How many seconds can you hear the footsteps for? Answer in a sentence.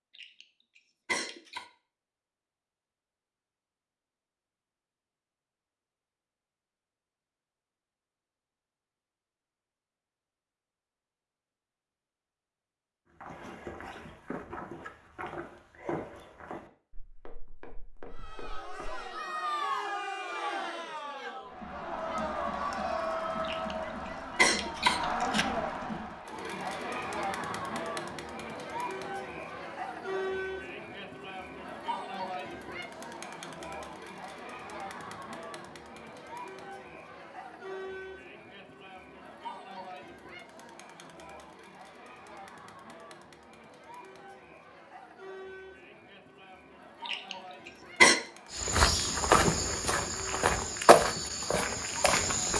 The footsteps can be heard for 10 seconds in total.